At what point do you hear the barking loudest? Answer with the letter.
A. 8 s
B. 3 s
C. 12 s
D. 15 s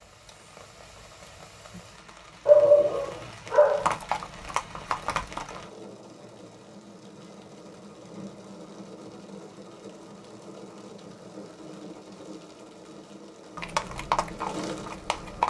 B.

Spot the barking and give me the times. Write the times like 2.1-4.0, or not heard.
2.5-4.0.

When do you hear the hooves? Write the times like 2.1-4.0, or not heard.
3.8-5.7, 13.6-15.4.